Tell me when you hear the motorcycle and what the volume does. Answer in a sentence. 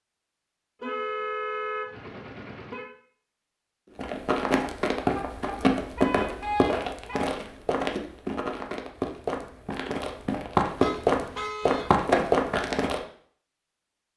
You can't hear the motorcycle here.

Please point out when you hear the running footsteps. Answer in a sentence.
You can hear the running footsteps from 4.0 to 13.0 s.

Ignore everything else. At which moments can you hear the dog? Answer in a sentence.
You can't hear the dog here.